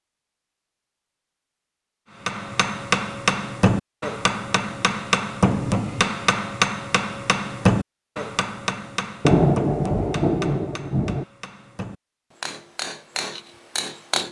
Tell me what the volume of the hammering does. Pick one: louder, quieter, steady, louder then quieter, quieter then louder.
quieter.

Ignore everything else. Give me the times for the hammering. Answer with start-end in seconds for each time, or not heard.
2.2-14.2.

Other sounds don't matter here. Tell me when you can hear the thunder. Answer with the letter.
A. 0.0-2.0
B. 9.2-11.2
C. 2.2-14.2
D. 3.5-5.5
B.